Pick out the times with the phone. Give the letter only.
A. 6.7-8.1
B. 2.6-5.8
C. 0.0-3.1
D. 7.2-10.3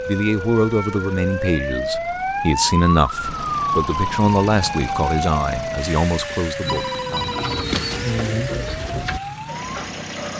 A.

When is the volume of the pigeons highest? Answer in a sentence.
The volume of the pigeons peaks at 8 seconds.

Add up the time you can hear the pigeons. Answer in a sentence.
You can hear the pigeons for 3 seconds altogether.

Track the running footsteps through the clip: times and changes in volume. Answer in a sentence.
The running footsteps can't be heard in this clip.